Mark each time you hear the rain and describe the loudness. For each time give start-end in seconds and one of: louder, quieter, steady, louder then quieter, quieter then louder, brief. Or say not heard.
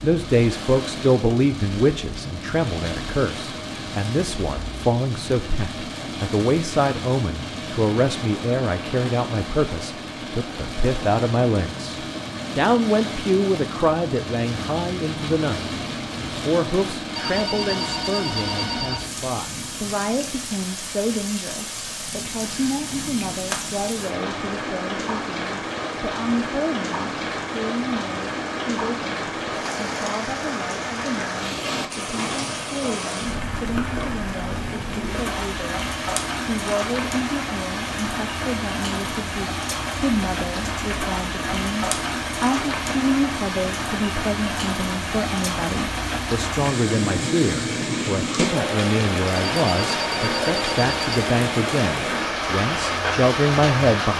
0.0-54.1 louder.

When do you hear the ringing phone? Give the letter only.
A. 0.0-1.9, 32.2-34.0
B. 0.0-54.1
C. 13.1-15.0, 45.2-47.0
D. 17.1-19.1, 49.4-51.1
D.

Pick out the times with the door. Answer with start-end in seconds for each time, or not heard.
not heard.